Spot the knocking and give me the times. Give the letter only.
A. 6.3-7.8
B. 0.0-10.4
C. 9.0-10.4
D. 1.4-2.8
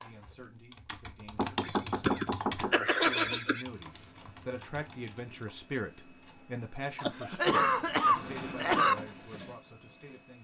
D.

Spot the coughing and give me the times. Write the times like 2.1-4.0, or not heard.
1.6-3.6, 7.0-8.9.